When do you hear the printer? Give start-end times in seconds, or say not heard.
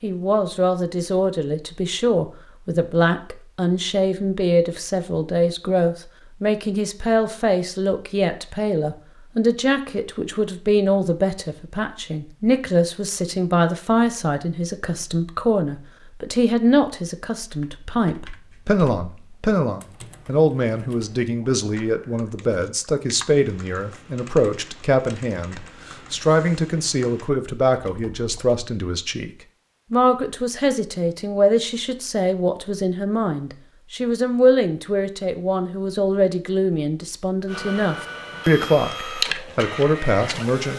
37.5-40.7.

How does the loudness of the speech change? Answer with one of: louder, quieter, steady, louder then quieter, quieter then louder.
steady.